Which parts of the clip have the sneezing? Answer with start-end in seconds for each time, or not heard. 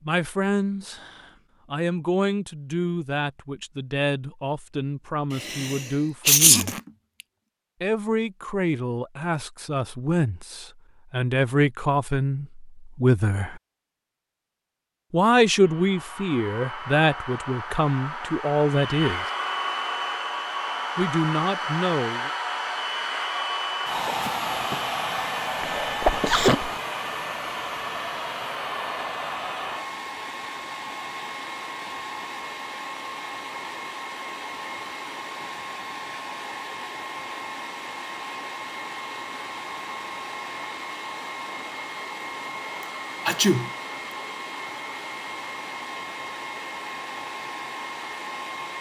5.3-6.8, 25.6-26.8, 42.8-43.7.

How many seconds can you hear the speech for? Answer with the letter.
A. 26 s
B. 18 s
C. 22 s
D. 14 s
B.